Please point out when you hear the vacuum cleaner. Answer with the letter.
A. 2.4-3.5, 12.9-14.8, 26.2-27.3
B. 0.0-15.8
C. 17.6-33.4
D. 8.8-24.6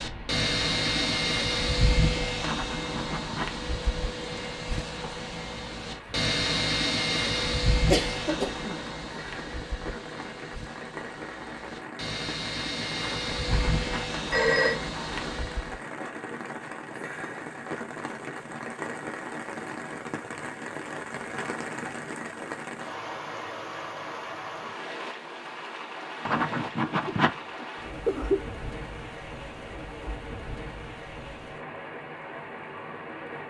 B.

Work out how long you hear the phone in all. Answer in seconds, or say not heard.
4 s.